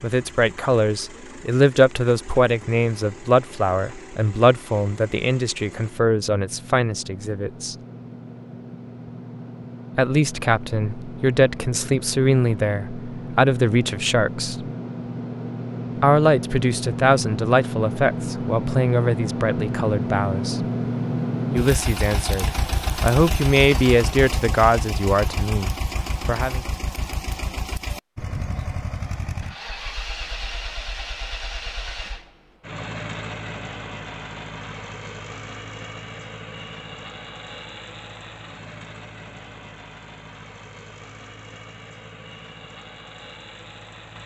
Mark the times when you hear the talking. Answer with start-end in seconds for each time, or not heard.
0.0-7.8, 9.9-14.7, 16.0-20.6, 21.5-26.6.